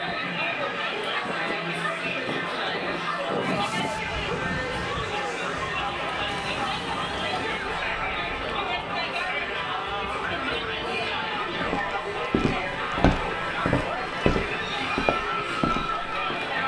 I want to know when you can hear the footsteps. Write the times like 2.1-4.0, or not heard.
11.4-16.4.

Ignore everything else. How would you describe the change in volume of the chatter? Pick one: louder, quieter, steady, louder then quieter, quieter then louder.
steady.